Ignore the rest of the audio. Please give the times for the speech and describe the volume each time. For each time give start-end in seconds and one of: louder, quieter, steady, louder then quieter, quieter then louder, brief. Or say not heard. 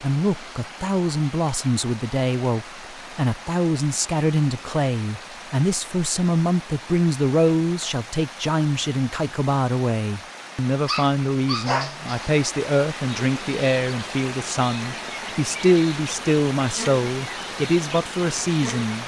0.0-19.0 steady.